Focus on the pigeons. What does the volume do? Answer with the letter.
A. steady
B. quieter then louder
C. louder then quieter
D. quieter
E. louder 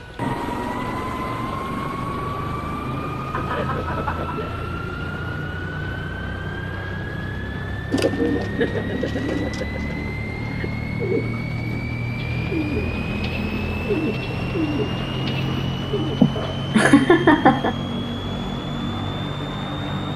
A.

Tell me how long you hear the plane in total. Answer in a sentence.
The plane can be heard for 20 seconds in total.